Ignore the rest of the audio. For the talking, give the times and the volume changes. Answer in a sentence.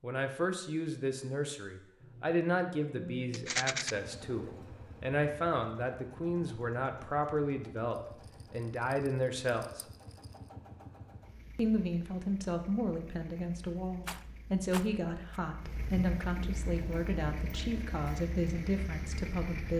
The talking can be heard from 0.0 to 9.8 s, at a steady volume; and from 11.6 to 19.7 s, at a steady volume.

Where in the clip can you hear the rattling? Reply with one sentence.
You can hear the rattling from 3.3 to 4.0 s, from 8.8 to 10.2 s and from 14.1 to 15.4 s.